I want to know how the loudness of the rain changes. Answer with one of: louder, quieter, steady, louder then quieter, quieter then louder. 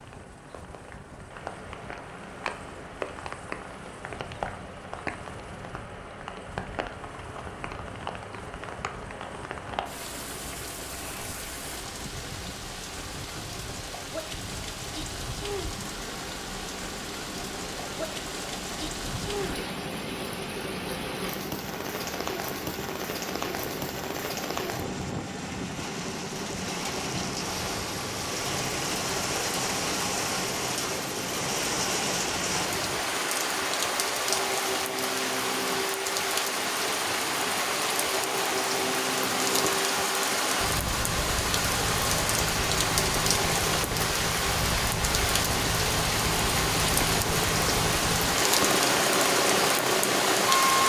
louder.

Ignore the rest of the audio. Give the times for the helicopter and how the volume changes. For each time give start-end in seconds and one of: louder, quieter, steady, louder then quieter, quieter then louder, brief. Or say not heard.
0.0-50.8 louder.